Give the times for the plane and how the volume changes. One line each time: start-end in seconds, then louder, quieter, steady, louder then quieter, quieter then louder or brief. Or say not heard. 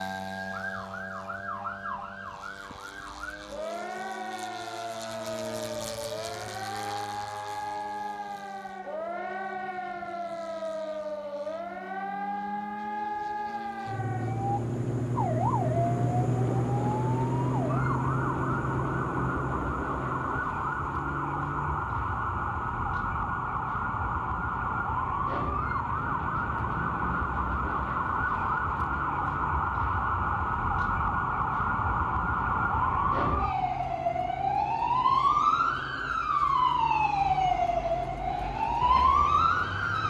0.0-40.0 louder then quieter.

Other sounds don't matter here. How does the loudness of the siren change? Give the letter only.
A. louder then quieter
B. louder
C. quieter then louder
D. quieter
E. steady
B.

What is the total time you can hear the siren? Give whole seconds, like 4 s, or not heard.
40 s.